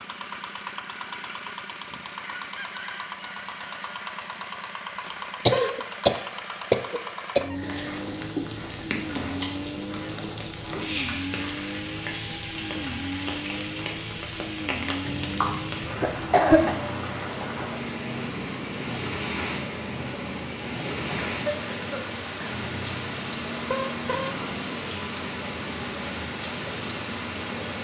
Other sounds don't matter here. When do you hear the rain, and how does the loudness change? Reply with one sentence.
You can hear the rain from 7.5 to 27.7 s, at a steady volume.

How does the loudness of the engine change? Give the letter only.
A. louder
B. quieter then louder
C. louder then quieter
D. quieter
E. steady
E.